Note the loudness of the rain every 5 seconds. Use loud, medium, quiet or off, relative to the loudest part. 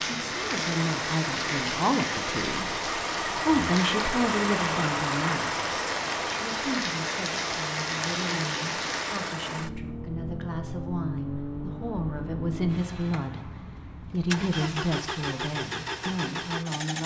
loud, loud, off, off.